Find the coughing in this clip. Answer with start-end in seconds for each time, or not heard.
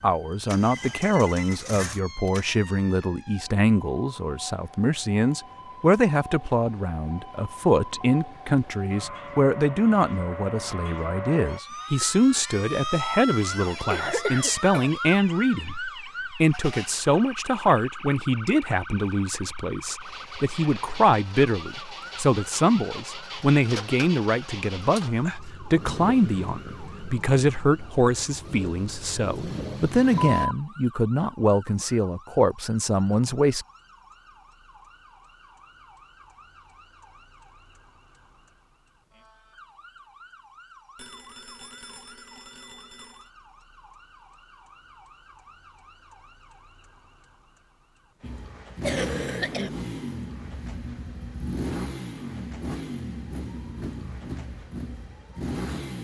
13.6-14.9, 48.8-49.7.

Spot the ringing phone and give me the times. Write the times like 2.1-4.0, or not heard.
0.7-1.6, 30.1-30.6, 41.0-43.2.